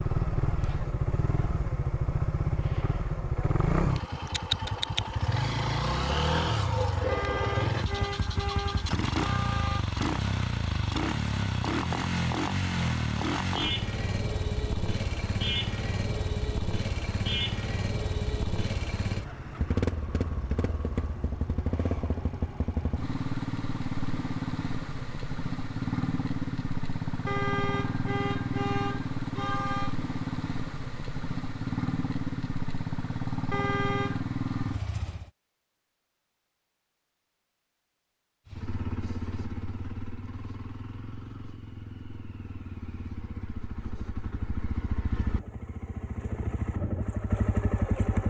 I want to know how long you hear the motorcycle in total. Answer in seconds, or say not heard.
45 s.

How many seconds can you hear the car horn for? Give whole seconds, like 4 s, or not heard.
6 s.